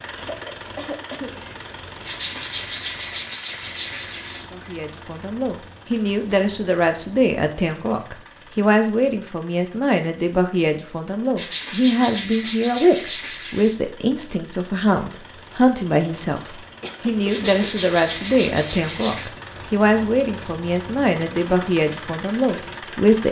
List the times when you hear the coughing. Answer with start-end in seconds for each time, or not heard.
0.1-1.4, 16.8-17.5.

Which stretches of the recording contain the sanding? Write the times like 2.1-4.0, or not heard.
2.0-4.5, 11.3-13.8, 17.3-19.3.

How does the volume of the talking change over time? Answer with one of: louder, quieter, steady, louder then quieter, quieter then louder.
steady.